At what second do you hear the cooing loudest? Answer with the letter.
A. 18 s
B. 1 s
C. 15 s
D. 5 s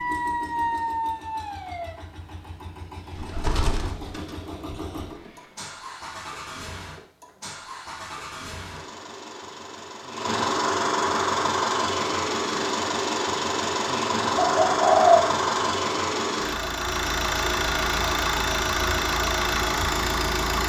C.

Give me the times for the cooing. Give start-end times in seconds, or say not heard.
3.1-5.3, 14.3-15.2.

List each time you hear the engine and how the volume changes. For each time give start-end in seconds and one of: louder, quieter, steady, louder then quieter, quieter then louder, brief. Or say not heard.
0.0-20.6 louder.